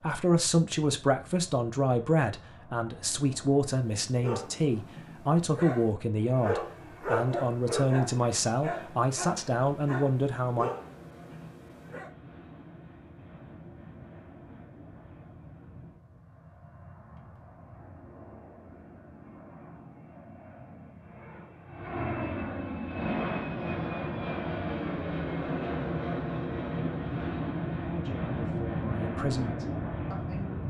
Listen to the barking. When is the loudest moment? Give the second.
7 s.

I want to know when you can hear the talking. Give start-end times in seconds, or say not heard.
0.0-10.7, 27.8-30.6.